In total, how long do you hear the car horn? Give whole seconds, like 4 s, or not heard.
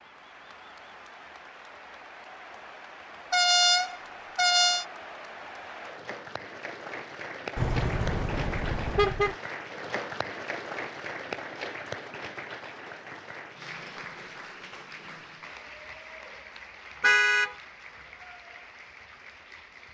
4 s.